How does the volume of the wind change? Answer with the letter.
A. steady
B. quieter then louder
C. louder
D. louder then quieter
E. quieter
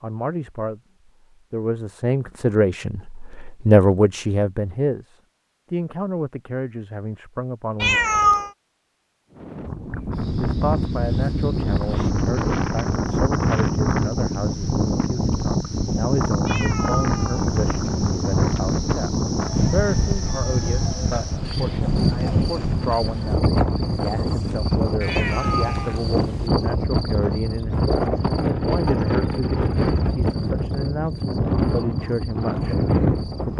A.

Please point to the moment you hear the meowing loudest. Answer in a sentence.
The volume of the meowing peaks at 8 seconds.